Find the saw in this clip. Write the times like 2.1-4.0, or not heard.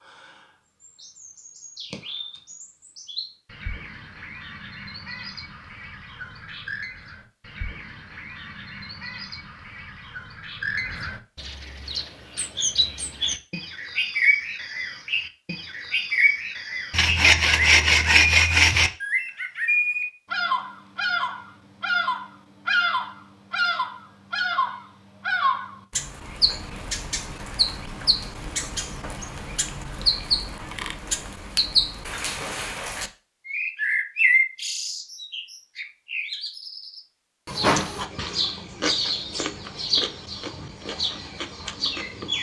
16.9-18.9.